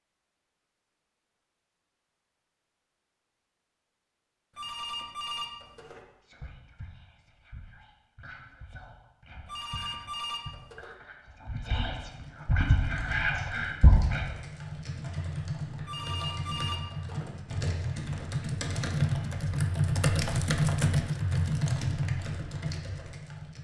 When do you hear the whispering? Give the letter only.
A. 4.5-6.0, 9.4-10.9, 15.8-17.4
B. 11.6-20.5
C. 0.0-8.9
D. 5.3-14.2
D.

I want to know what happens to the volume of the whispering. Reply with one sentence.
The volume of the whispering goes up.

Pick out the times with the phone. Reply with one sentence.
The phone can be heard from 4.5 to 6.0 s, from 9.4 to 10.9 s and from 15.8 to 17.4 s.